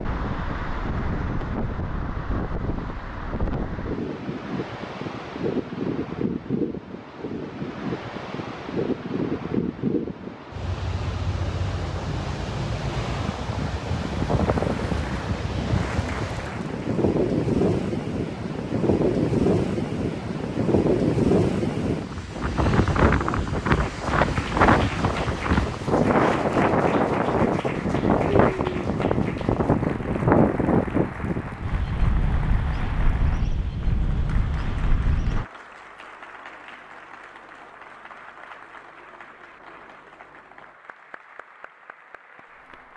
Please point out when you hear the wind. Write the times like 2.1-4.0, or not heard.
0.0-35.5.